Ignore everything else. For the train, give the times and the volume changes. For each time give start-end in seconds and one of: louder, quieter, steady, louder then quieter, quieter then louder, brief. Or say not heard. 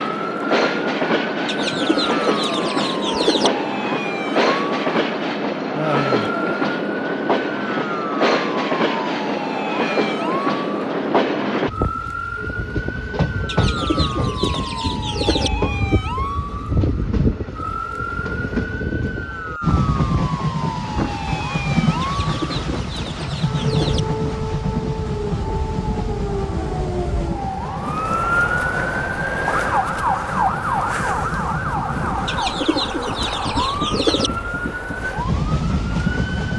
0.0-36.5 quieter.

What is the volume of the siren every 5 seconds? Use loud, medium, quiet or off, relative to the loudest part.
medium, medium, medium, medium, medium, loud, loud, medium.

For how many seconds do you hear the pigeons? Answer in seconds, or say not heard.
8 s.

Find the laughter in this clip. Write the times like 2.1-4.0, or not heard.
5.8-6.3.